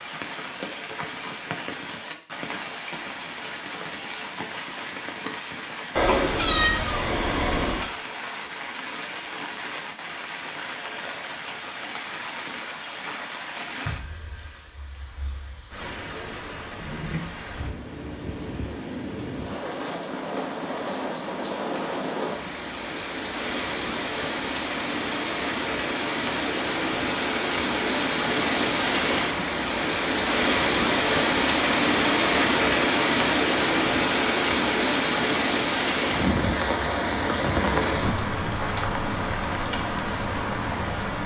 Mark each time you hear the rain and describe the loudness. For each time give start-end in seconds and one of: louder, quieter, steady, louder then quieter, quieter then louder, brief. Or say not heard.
0.0-41.2 louder.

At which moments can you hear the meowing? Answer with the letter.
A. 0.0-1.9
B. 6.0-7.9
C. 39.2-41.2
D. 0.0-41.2
B.